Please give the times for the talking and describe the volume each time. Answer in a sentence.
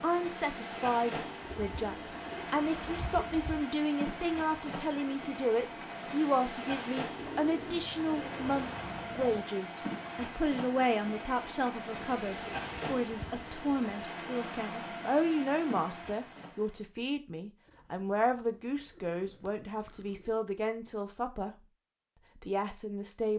The talking can be heard from 0.0 to 21.6 s, at a steady volume; and briefly from 22.4 to 23.3 s.